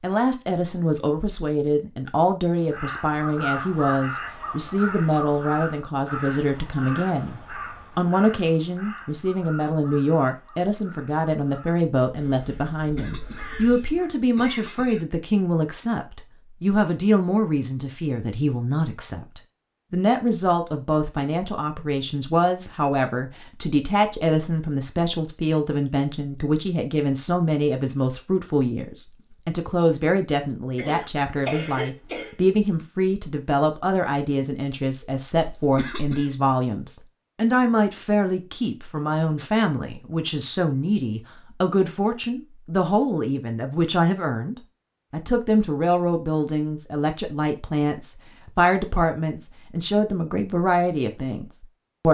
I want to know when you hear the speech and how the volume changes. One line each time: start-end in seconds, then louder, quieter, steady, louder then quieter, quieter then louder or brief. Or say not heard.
0.0-52.0 steady.